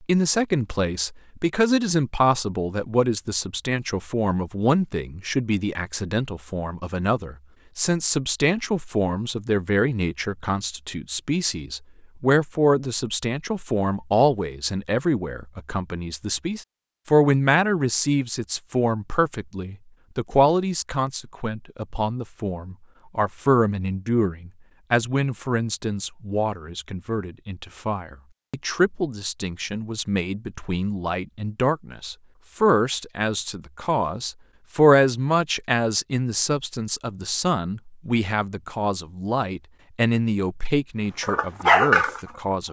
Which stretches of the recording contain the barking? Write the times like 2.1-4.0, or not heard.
41.2-42.6.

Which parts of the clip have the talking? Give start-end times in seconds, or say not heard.
0.0-42.6.